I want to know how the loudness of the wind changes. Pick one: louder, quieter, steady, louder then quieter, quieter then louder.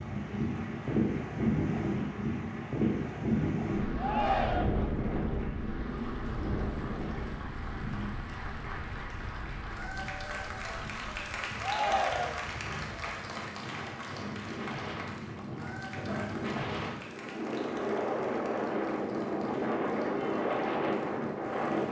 quieter then louder.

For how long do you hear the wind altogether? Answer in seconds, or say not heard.
22 s.